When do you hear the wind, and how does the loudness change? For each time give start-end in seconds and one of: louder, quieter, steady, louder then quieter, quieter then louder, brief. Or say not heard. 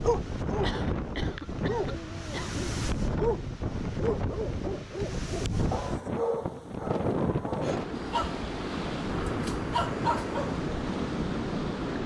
0.0-12.0 steady.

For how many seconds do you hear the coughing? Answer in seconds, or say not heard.
2 s.